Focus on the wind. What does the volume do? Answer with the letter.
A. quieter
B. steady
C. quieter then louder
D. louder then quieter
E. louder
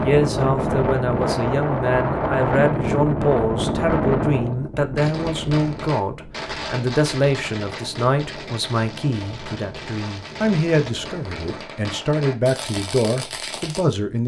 A.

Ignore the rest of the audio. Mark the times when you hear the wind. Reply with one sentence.
You can hear the wind from 0.0 to 11.4 s.